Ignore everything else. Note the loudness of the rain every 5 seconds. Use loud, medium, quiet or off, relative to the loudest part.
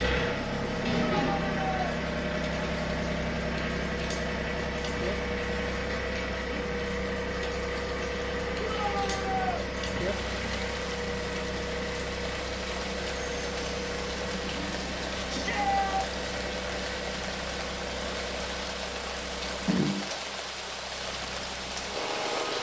medium, medium, loud, loud, loud.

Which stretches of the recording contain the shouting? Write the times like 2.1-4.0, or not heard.
0.9-1.8, 8.6-9.7, 15.2-16.1.